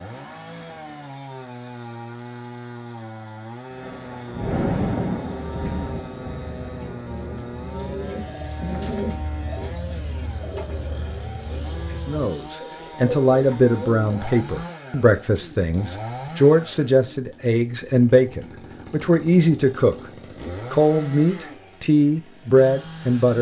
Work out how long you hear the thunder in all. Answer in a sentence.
You can hear the thunder for 4 seconds altogether.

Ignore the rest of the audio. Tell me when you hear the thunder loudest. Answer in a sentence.
The volume of the thunder peaks at 5 seconds.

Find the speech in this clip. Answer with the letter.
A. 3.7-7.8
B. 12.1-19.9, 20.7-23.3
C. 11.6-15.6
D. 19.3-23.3
B.